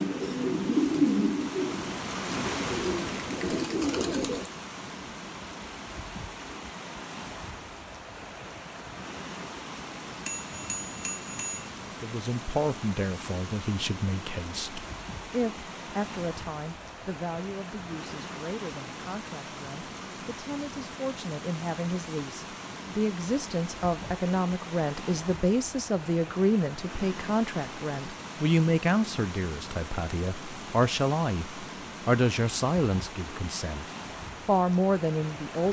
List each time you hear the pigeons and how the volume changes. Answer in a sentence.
The pigeons can be heard from 0.0 to 4.5 s, getting quieter then louder.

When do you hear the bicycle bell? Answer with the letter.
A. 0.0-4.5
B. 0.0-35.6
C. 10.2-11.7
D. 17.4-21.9
C.